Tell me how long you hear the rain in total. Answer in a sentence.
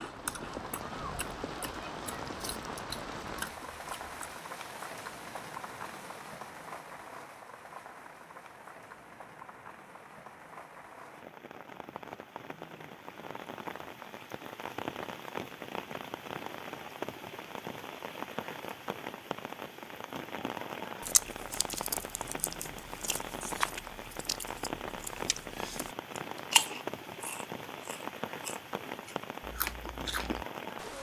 The rain can be heard for 31 seconds in total.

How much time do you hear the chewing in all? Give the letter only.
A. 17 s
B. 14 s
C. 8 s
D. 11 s
B.